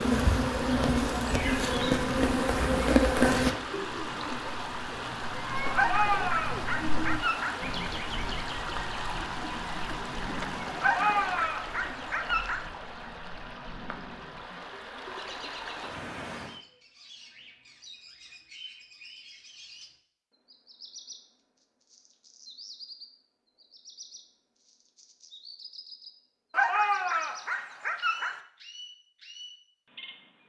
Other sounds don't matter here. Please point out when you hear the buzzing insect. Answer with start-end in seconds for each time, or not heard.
0.0-3.5.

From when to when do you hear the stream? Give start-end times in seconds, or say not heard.
0.0-16.6.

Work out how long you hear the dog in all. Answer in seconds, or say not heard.
6 s.